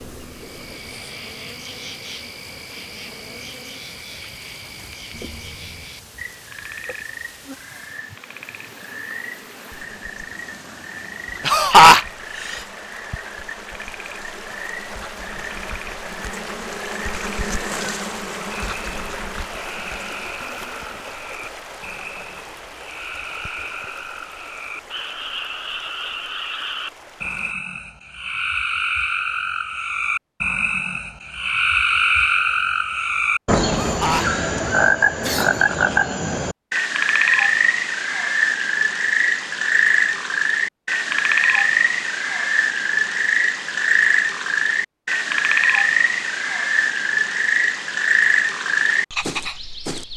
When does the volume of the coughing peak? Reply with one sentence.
The loudest moment of the coughing is at 12 seconds.